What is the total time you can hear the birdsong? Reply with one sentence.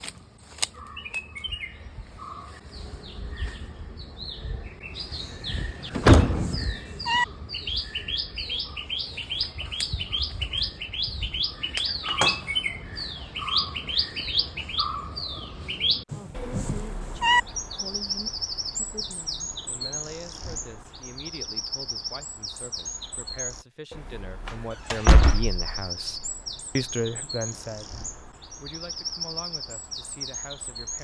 You can hear the birdsong for 31 seconds altogether.